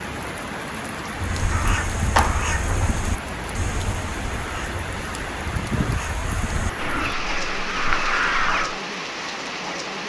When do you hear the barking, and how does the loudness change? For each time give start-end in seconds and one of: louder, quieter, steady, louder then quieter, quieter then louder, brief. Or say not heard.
not heard.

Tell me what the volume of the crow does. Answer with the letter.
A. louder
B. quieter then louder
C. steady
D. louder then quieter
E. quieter
B.